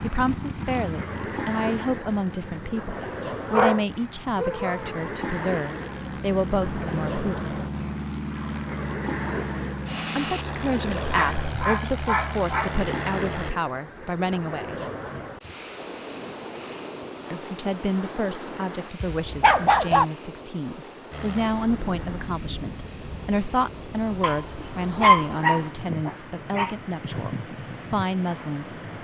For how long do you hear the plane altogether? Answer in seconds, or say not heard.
21 s.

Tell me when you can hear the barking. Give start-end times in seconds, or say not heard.
3.5-5.0, 11.0-12.8, 19.0-20.1, 24.2-26.7.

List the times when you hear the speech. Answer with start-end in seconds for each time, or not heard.
0.0-7.5, 10.2-14.8, 17.3-28.7.